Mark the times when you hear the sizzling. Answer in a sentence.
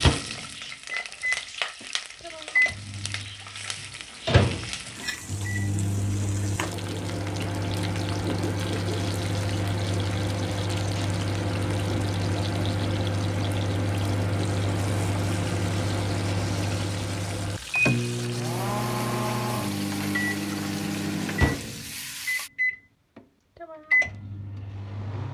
You can hear the sizzling from 0.0 to 22.5 s.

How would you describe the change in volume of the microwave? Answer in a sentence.
The volume of the microwave stays about the same.